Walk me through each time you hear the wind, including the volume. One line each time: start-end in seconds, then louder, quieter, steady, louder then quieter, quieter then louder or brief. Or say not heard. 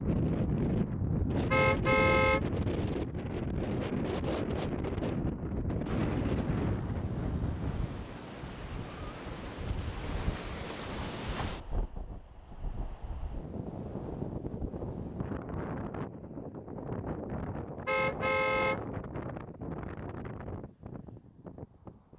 0.0-22.1 quieter.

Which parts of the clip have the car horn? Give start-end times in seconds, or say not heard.
1.5-2.5, 17.9-18.8.